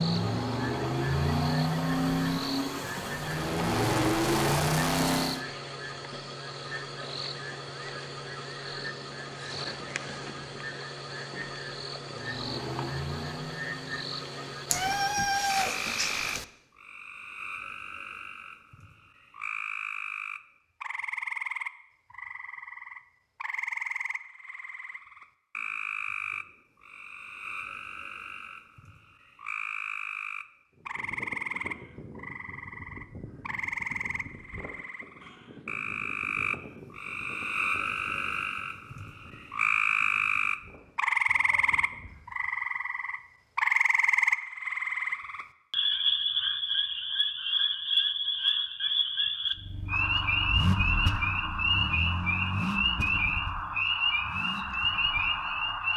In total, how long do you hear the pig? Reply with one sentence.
You can't hear the pig here.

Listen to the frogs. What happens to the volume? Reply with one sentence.
The loudness of the frogs goes up.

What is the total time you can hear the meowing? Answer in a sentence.
You can hear the meowing for 2 seconds altogether.